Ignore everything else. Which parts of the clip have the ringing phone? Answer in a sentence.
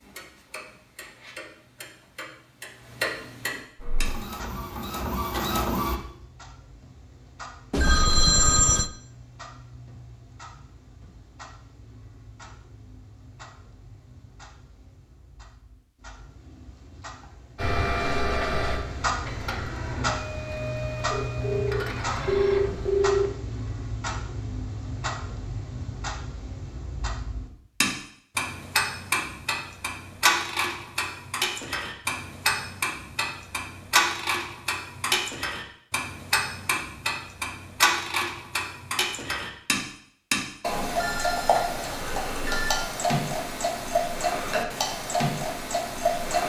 The ringing phone can be heard from 7.7 to 8.8 s, from 21.1 to 23.4 s and from 41.0 to 42.8 s.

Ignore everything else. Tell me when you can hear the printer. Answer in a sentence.
The printer can be heard from 3.8 to 6.0 s and from 17.6 to 23.1 s.